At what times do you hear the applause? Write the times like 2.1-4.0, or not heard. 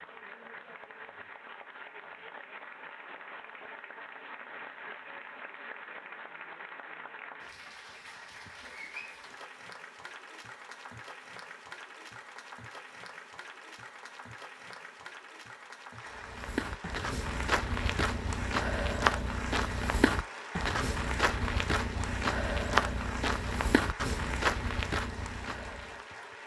0.0-26.4.